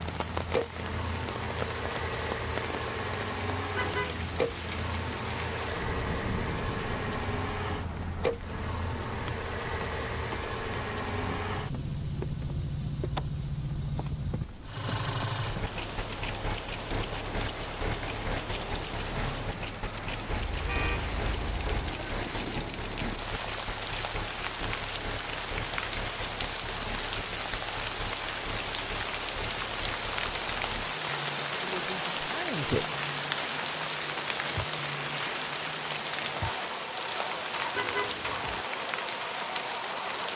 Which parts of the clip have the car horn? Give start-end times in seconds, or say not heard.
3.8-4.7, 20.3-21.9, 37.8-38.6.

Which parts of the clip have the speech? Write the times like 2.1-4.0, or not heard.
31.5-33.0.